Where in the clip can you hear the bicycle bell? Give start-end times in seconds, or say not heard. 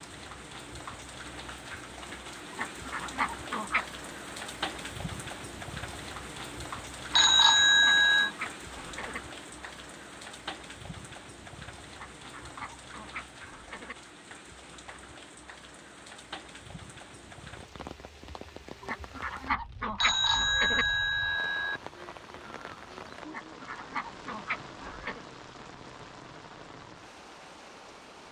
7.1-8.3, 19.9-21.8.